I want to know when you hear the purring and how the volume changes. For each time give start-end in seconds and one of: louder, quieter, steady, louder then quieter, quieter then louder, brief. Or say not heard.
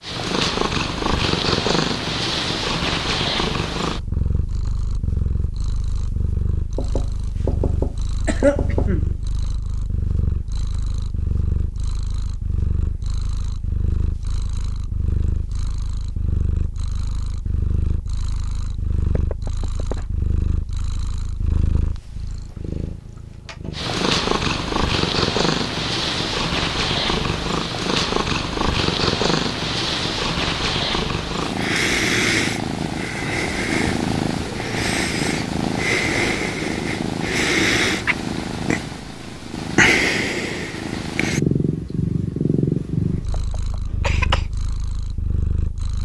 0.0-46.0 quieter then louder.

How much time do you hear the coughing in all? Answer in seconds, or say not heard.
3 s.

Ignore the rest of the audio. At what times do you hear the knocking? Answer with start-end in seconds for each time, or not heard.
6.8-8.9, 19.1-19.9, 43.3-43.9.